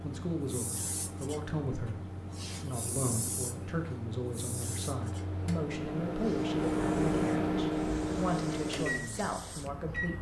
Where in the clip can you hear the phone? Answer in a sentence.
You can't hear the phone here.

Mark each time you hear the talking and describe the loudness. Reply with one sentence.
The talking can be heard from 0.0 to 10.1 s, at a steady volume.